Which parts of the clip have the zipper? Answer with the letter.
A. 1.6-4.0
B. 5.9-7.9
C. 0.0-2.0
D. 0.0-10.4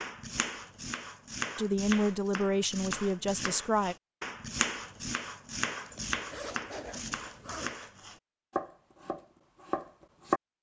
B.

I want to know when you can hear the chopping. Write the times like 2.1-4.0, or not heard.
0.0-10.4.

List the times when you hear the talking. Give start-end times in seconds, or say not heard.
1.6-4.0.